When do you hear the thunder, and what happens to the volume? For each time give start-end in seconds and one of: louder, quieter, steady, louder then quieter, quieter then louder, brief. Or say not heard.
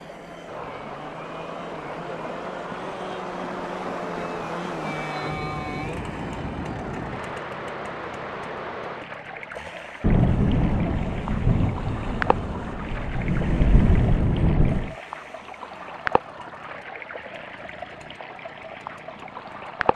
10.0-14.9 quieter then louder.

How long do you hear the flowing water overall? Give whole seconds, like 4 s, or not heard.
20 s.